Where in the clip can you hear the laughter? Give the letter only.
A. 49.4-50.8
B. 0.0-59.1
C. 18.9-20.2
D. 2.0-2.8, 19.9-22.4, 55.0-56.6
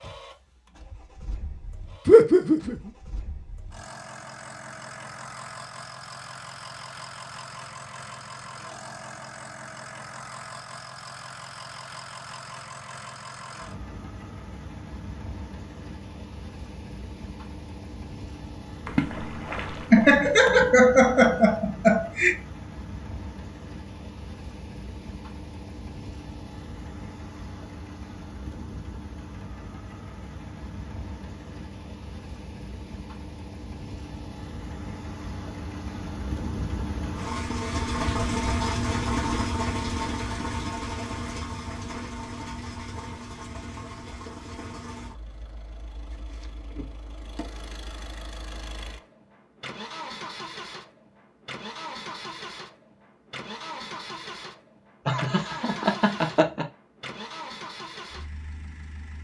D.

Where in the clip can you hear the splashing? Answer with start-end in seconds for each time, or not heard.
18.9-20.2.